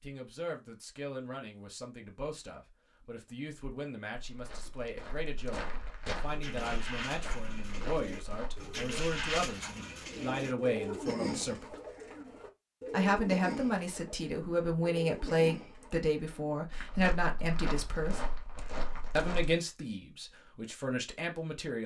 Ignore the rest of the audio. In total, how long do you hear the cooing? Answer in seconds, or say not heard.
10 s.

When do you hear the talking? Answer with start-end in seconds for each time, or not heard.
0.0-11.8, 12.9-18.2, 19.1-21.8.